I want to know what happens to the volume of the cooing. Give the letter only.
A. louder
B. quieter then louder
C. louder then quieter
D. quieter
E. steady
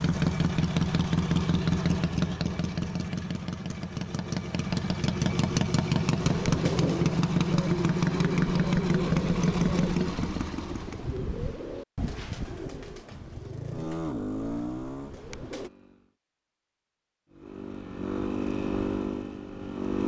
D.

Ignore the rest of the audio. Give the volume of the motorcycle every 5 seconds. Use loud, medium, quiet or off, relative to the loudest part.
loud, loud, medium, medium.